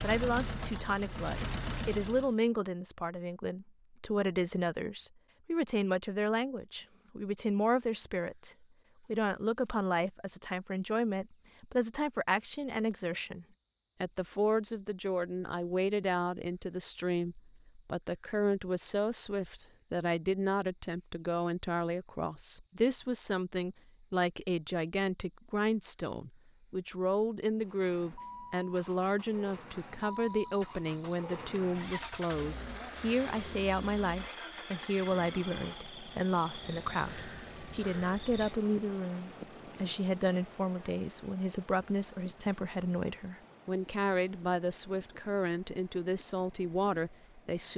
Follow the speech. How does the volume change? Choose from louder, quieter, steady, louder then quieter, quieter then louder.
steady.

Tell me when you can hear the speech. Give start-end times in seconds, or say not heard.
0.0-47.7.